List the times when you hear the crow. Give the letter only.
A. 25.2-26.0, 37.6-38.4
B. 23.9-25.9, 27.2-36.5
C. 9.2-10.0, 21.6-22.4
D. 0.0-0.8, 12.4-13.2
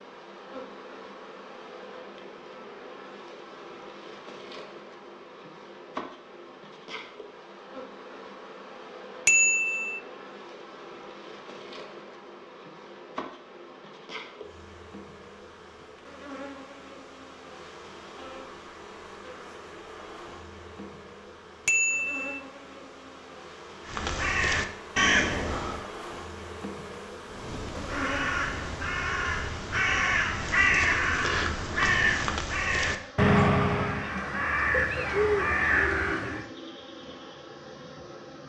B.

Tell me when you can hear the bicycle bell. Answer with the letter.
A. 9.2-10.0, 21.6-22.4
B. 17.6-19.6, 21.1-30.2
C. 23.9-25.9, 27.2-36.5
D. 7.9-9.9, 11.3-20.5
A.